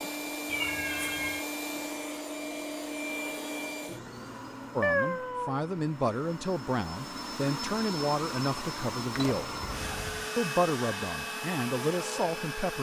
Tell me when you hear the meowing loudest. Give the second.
5 s.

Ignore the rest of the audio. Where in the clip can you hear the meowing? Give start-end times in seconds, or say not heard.
0.5-1.4, 4.8-5.6, 9.1-10.3.